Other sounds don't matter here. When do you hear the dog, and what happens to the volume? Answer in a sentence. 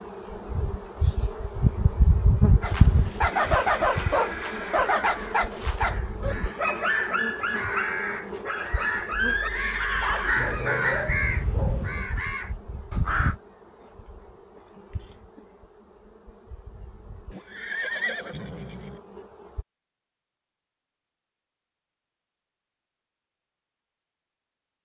You can hear the dog from 2.6 to 12.1 s, getting quieter.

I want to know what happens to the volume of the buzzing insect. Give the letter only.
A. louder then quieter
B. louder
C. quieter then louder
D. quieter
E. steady
D.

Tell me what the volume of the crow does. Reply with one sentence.
The volume of the crow goes up, then down.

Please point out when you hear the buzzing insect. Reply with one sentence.
The buzzing insect can be heard from 0.0 to 19.6 s.